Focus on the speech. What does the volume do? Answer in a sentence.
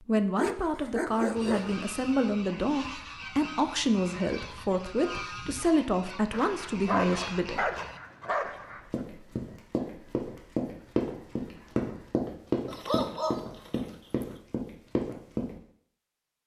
The volume of the speech stays about the same.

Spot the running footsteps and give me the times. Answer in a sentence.
You can hear the running footsteps from 8.9 to 15.6 s.